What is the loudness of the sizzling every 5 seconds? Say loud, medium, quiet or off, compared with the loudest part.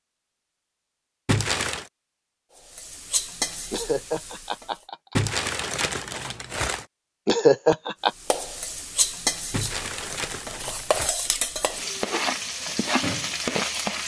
medium, loud, loud.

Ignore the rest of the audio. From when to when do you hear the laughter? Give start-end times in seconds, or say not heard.
3.7-5.3, 7.2-8.1.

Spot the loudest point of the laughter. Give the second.
8 s.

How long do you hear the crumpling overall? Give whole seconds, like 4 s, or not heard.
4 s.